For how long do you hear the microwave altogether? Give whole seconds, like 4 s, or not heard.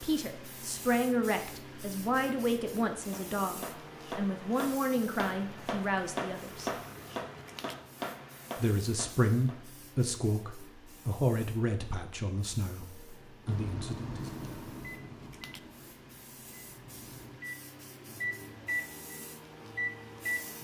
7 s.